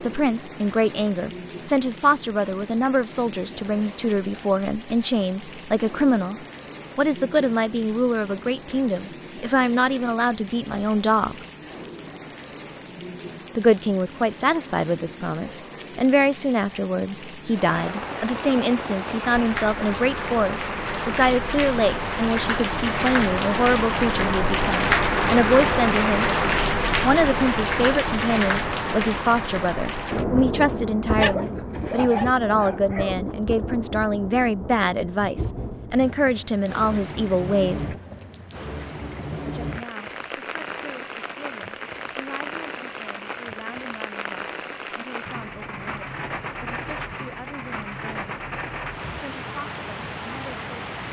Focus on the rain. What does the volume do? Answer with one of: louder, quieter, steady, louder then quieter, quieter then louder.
louder then quieter.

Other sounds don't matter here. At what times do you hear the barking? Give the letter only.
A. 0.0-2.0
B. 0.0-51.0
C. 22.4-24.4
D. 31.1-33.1
D.